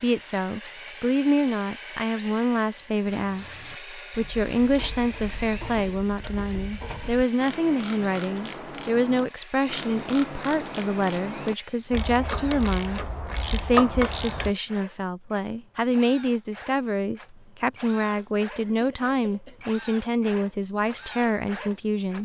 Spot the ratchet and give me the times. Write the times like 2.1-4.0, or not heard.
3.0-14.6.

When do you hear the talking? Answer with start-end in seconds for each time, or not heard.
0.0-22.2.